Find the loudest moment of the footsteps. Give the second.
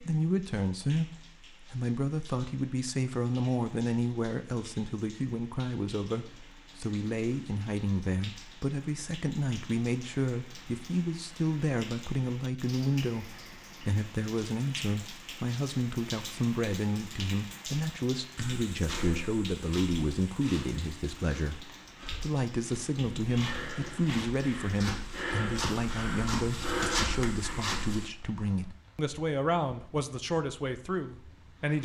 27 s.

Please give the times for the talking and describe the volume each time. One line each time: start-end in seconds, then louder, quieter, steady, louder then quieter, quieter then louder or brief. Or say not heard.
0.0-31.8 steady.